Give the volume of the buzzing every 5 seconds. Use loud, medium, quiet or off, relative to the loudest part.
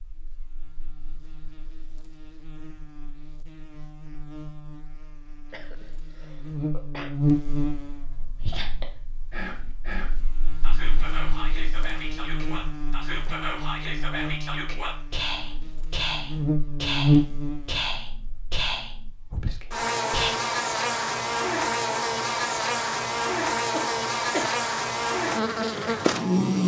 quiet, medium, quiet, loud, loud, loud.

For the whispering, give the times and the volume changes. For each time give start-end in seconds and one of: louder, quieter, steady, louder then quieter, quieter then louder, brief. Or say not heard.
8.4-20.4 louder.